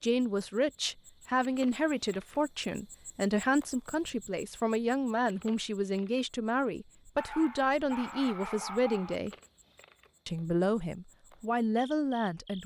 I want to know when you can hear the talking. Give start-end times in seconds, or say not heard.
0.0-9.3, 10.2-12.6.